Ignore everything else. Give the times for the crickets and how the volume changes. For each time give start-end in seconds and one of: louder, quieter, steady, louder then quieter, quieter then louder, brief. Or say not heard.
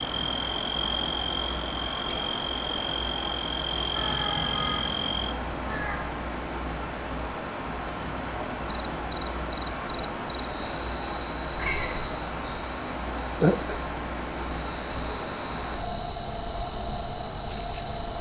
0.0-18.1 steady.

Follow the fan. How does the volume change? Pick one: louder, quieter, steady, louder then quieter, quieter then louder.
steady.